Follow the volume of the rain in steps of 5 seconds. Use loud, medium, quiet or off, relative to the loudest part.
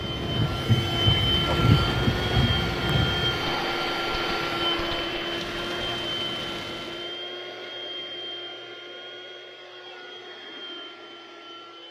loud, medium, off.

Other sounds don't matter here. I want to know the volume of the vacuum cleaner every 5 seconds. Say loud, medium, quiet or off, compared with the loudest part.
loud, medium, quiet.